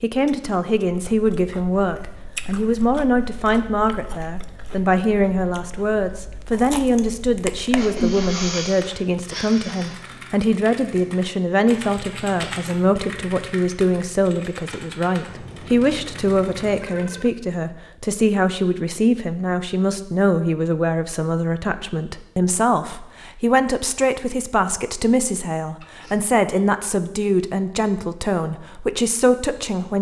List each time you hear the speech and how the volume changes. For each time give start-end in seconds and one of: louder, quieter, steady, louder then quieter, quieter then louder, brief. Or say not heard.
0.0-29.9 steady.